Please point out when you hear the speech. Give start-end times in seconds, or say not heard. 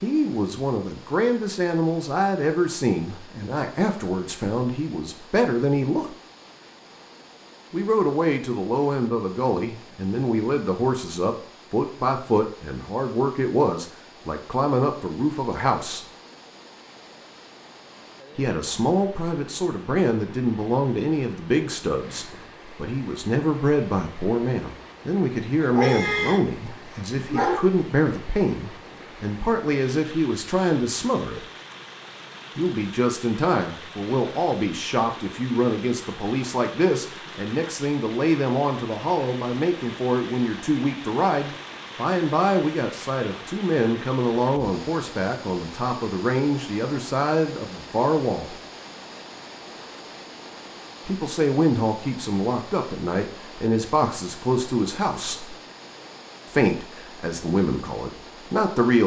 0.0-6.2, 7.7-16.1, 18.4-31.4, 32.5-48.5, 51.0-55.5, 56.5-59.0.